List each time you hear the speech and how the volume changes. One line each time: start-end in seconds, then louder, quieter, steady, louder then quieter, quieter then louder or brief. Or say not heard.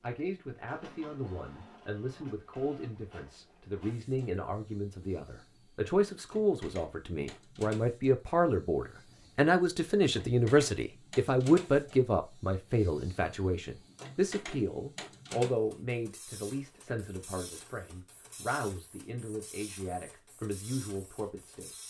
0.0-21.8 louder then quieter.